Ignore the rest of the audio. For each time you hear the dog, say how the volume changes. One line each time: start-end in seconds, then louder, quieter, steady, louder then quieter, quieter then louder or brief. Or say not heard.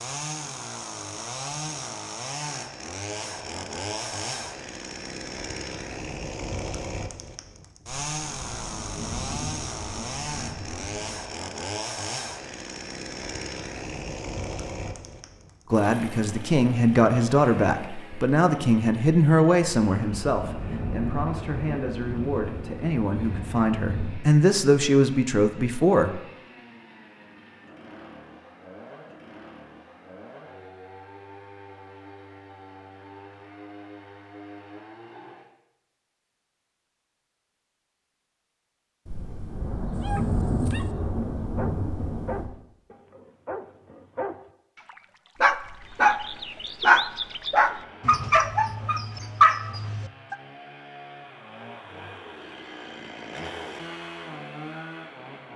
40.0-50.4 louder.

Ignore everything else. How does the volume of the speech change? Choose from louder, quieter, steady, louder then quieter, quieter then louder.
quieter then louder.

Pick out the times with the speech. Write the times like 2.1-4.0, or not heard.
15.7-26.2.